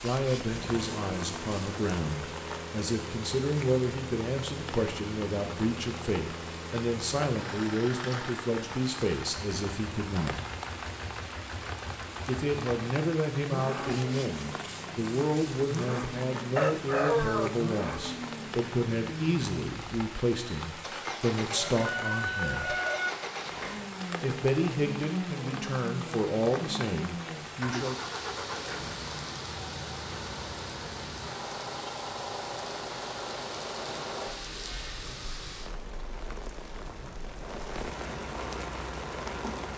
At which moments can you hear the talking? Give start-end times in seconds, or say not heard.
0.0-10.4, 12.2-22.8, 24.2-27.9.